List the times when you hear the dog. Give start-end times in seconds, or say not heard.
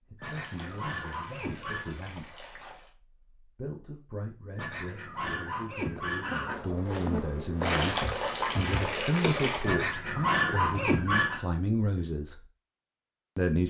0.1-1.9, 4.5-6.5, 9.6-11.4.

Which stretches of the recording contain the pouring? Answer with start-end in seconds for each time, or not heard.
0.2-3.0, 7.7-9.7.